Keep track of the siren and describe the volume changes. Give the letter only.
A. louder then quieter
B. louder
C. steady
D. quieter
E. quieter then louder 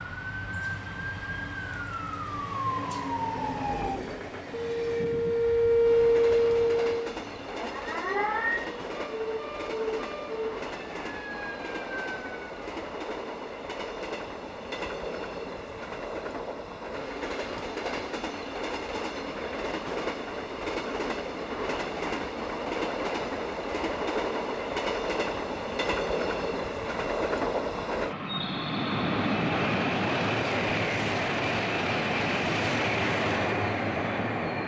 A.